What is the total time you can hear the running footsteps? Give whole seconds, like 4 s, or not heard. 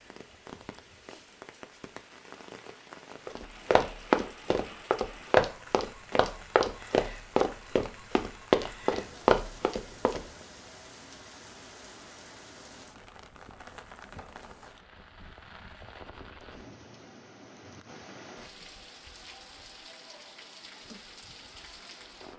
7 s.